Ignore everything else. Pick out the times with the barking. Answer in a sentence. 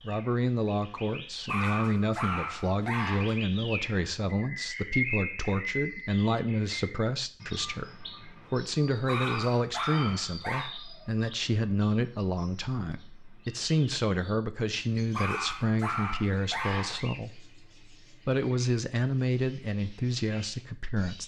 You can hear the barking from 1.4 to 3.4 s, from 9.1 to 10.7 s and from 15.1 to 17.1 s.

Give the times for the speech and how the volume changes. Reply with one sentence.
The speech can be heard from 0.0 to 21.2 s, at a steady volume.